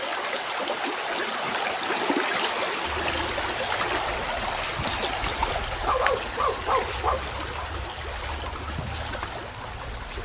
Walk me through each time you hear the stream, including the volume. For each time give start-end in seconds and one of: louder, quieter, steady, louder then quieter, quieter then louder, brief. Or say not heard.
0.0-10.2 quieter.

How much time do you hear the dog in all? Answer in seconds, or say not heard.
2 s.